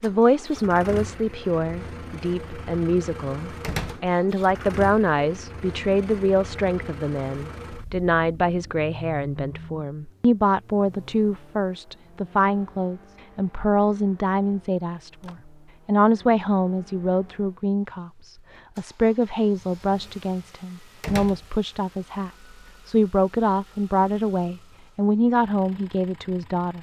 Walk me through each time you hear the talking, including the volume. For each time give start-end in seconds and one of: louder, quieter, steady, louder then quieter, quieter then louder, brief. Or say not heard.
0.0-26.7 steady.